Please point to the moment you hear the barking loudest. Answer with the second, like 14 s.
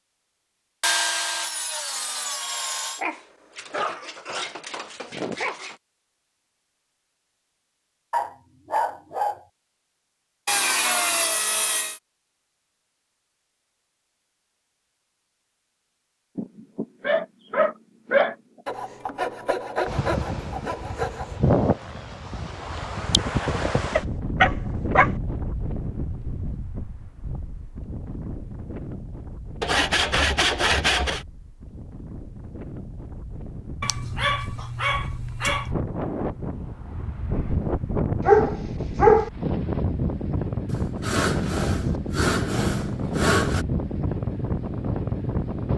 39 s.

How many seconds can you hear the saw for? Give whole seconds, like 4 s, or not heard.
11 s.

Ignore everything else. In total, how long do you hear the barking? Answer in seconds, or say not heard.
10 s.